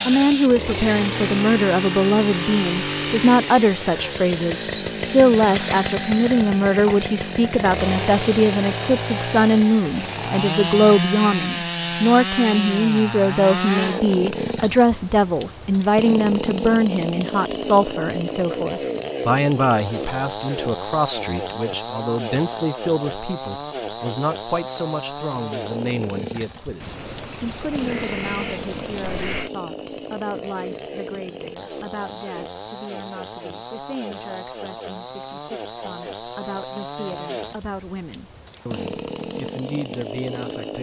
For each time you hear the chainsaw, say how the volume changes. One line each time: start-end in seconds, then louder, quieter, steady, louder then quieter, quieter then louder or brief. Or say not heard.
0.0-40.7 quieter.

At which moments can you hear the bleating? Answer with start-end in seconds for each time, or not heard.
26.8-29.5.